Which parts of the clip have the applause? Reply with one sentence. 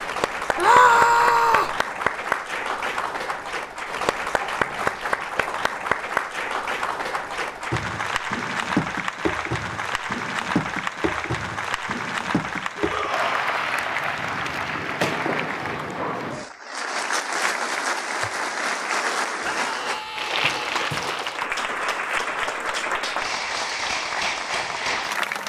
You can hear the applause from 0.0 to 25.4 s.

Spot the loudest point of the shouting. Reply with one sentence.
The volume of the shouting peaks at 1 second.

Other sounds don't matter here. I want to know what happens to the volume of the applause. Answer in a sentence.
The loudness of the applause stays about the same.